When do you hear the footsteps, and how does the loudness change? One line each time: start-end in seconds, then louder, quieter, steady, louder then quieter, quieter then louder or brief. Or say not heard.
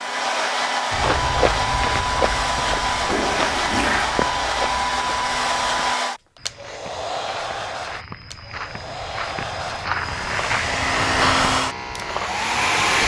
0.9-11.6 quieter then louder.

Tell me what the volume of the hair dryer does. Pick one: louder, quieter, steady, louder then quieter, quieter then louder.
quieter then louder.